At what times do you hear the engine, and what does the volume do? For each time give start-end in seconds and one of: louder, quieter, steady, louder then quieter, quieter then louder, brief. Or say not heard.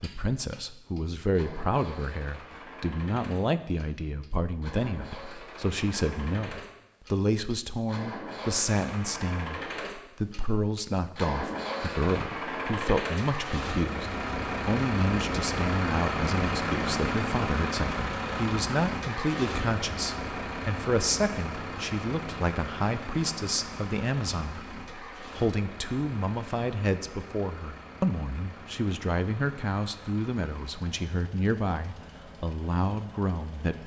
0.0-33.8 louder then quieter.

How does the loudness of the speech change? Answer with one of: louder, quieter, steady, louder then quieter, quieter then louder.
steady.